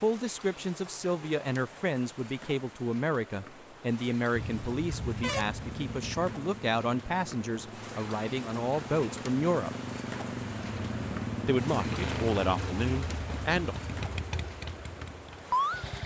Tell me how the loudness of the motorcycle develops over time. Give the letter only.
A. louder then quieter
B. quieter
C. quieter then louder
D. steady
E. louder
E.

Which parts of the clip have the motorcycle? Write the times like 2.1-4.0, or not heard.
5.5-16.0.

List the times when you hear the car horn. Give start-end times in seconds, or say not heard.
4.3-6.3.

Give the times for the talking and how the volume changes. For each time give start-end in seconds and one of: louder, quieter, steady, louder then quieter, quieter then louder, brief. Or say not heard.
0.0-9.7 steady
11.4-13.8 brief.